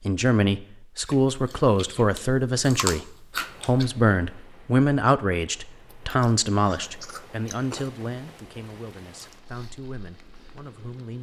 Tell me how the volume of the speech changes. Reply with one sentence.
The volume of the speech goes down.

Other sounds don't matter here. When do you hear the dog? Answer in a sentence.
You can't hear the dog here.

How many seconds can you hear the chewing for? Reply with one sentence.
You can hear the chewing for 5 seconds altogether.